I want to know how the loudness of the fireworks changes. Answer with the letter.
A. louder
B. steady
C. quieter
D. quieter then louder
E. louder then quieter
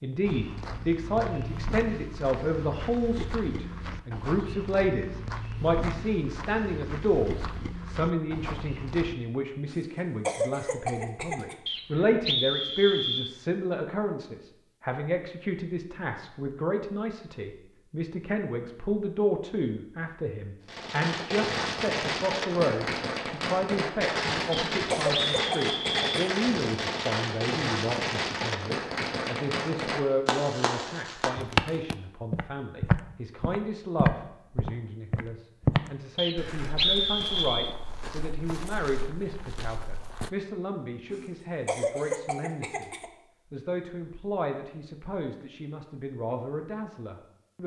B.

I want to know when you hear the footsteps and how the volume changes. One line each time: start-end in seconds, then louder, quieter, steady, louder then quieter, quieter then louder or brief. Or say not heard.
0.2-9.2 steady
31.4-40.3 quieter.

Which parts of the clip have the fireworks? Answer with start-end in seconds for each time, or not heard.
20.6-31.9.